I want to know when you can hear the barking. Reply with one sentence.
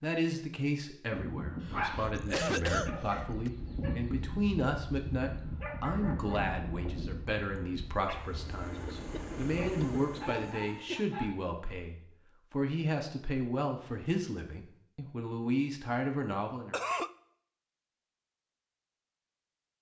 You can hear the barking from 1.1 to 11.2 s.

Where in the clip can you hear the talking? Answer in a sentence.
The talking can be heard from 0.0 to 16.8 s.